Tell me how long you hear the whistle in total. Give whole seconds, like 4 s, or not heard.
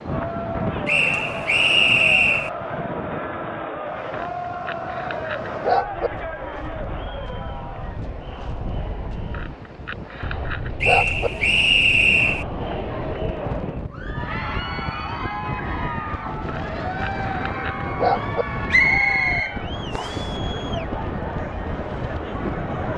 5 s.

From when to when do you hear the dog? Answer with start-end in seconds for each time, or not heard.
4.1-6.1, 9.3-11.3, 16.4-18.4.